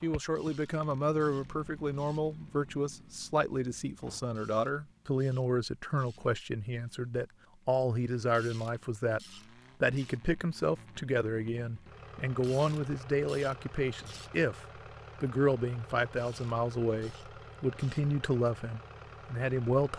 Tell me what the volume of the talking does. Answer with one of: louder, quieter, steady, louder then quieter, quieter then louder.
steady.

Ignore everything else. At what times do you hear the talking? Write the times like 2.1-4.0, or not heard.
0.0-9.2, 9.8-19.9.